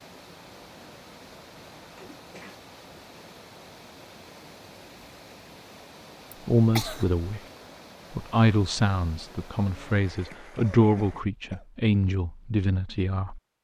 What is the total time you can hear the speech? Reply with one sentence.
You can hear the speech for 6 seconds altogether.